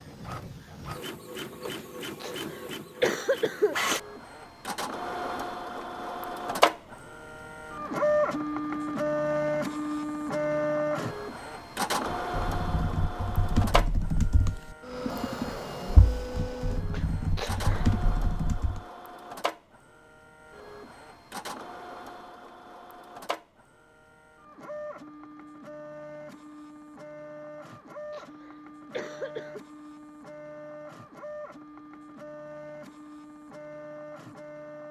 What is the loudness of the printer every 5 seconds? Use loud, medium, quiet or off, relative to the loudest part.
medium, loud, loud, medium, quiet, quiet, quiet.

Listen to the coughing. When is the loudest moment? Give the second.
3 s.